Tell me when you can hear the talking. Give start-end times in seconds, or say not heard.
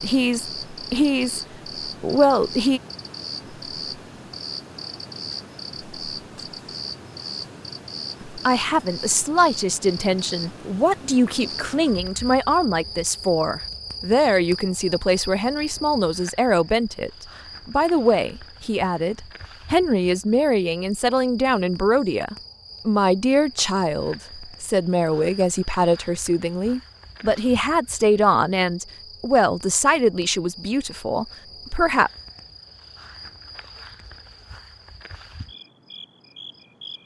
0.0-2.8, 8.2-32.1.